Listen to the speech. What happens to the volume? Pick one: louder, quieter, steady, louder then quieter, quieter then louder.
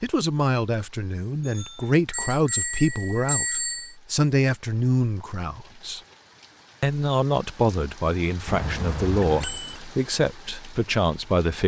steady.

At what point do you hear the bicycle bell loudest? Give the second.
3 s.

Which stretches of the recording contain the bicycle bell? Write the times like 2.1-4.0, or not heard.
1.4-4.0, 8.4-9.8.